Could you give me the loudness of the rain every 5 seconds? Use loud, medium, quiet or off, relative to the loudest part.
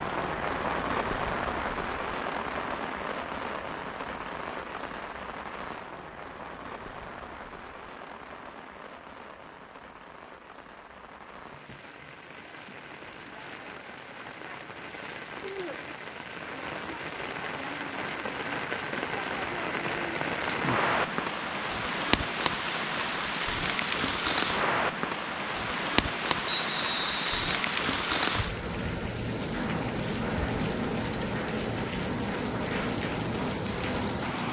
loud, quiet, quiet, medium, loud, loud, loud.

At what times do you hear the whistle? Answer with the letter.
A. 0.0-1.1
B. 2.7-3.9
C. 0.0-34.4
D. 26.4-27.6
D.